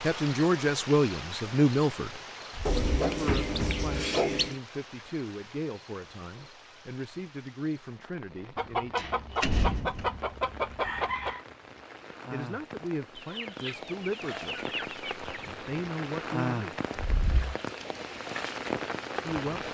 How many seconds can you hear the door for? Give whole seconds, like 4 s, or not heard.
3 s.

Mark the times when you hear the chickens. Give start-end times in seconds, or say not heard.
2.6-4.5, 8.6-11.4, 13.2-15.6.